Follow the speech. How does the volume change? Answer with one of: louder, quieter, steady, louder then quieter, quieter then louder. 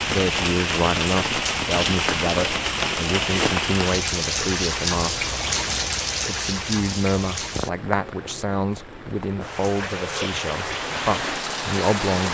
steady.